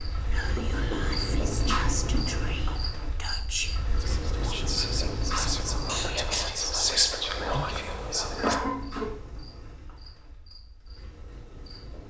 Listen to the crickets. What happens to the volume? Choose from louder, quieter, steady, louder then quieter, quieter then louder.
quieter.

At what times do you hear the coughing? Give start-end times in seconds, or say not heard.
0.6-2.4, 5.8-6.5, 8.4-9.2.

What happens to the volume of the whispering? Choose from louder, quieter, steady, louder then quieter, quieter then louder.
louder.